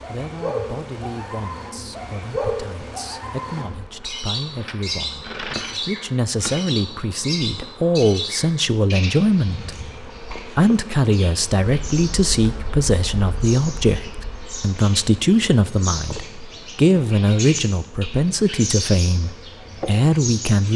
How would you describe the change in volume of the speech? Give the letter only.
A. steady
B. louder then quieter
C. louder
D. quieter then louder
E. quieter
C.